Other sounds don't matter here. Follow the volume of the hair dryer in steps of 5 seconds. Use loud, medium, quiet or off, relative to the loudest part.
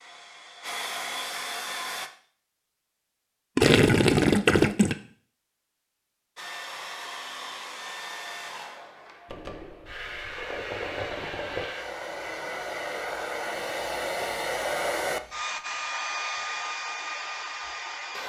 loud, medium, loud, loud.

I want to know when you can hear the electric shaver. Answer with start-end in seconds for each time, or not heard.
not heard.